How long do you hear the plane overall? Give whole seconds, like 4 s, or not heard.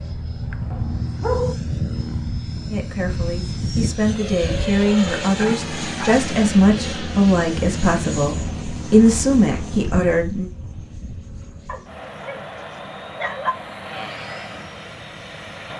16 s.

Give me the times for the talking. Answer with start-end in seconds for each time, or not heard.
2.7-10.5.